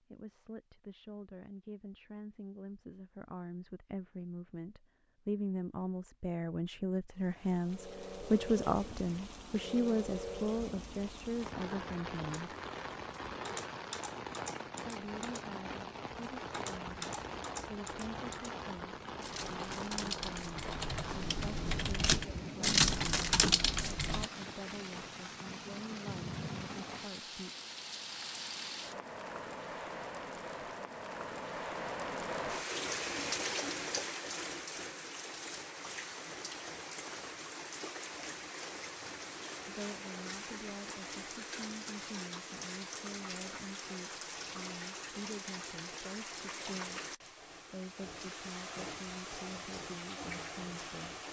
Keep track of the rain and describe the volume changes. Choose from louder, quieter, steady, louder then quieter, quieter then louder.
steady.